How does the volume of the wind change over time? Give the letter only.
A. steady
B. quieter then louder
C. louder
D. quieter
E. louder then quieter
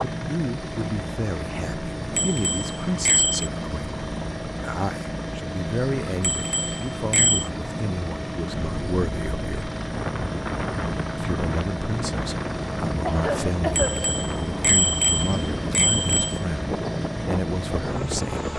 A.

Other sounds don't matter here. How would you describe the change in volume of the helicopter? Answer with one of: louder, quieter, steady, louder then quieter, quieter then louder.
steady.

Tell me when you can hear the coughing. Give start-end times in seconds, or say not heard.
13.1-14.2.